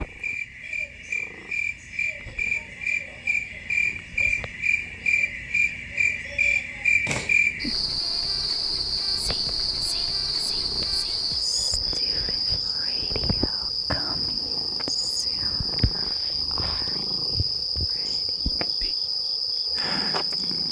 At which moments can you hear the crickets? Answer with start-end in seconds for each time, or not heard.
0.0-20.6.